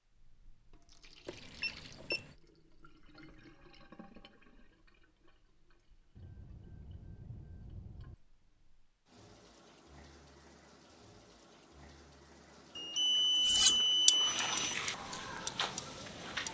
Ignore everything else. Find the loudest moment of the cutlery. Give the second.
14 s.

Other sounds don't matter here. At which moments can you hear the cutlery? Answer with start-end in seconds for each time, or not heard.
13.4-15.8.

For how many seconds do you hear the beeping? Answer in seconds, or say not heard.
5 s.